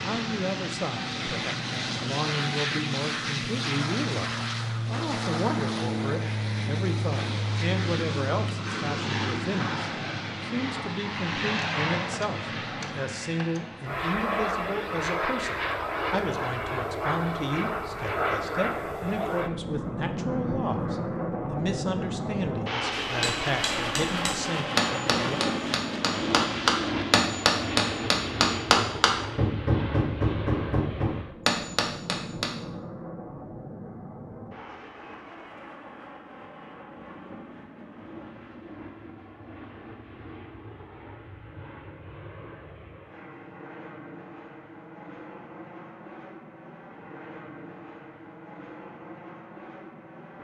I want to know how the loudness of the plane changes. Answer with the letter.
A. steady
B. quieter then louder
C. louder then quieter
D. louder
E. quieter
E.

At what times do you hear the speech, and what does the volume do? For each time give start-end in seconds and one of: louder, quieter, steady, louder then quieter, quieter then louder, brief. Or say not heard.
0.0-25.4 steady.